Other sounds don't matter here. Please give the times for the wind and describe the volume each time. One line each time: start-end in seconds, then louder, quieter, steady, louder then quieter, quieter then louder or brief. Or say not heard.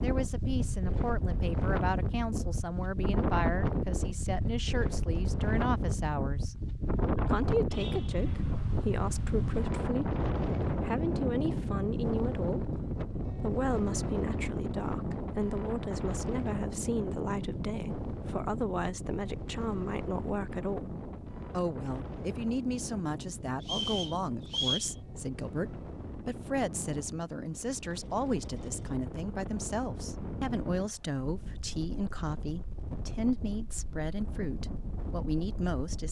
0.0-36.0 quieter.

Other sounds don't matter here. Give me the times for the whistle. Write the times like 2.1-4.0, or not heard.
23.6-24.9.